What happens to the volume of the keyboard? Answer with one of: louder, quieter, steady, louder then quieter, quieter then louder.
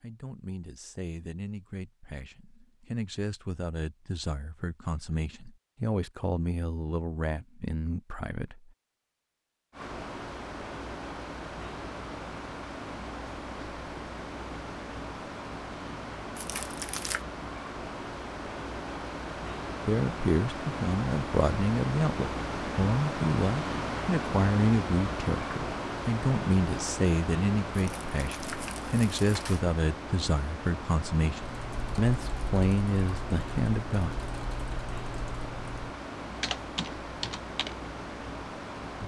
louder.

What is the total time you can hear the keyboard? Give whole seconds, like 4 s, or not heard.
6 s.